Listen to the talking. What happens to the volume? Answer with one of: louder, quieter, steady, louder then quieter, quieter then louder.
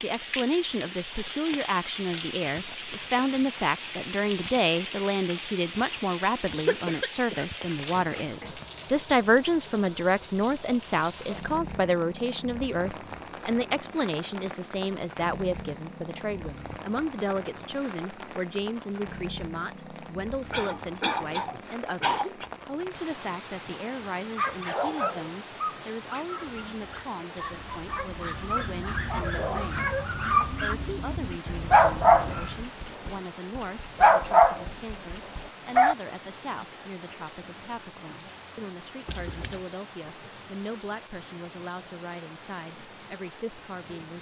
quieter.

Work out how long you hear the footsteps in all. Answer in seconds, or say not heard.
not heard.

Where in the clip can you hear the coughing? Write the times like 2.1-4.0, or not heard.
6.7-8.7, 20.5-22.5, 39.0-39.6.